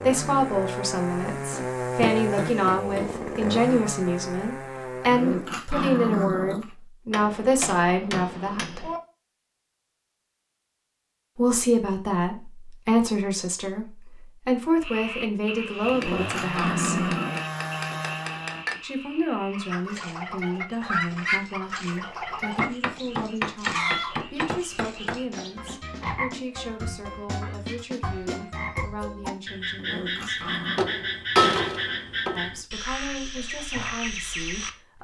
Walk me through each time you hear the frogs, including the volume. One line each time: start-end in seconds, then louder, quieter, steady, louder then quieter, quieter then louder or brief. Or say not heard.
14.8-34.9 quieter then louder.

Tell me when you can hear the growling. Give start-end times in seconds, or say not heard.
5.1-6.7, 15.9-17.4, 29.8-30.9.